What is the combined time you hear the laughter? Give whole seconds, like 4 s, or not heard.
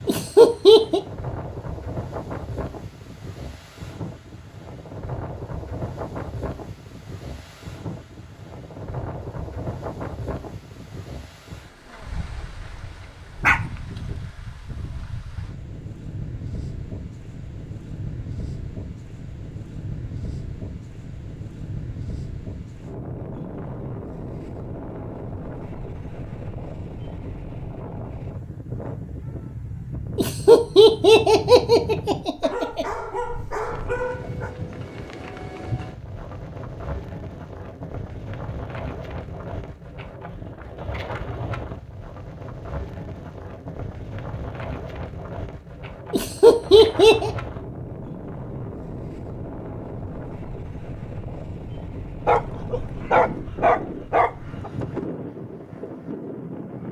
5 s.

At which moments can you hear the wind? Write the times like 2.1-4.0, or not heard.
0.0-56.8.